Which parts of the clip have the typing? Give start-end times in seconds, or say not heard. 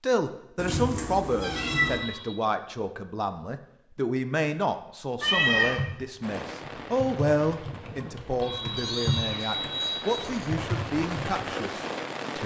5.7-11.6.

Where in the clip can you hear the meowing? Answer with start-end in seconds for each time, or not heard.
0.6-2.0, 5.2-5.8, 8.8-10.5.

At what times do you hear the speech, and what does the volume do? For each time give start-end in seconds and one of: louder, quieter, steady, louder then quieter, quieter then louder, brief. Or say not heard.
0.0-12.4 steady.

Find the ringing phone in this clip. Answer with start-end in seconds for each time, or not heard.
1.6-2.4, 8.4-10.3.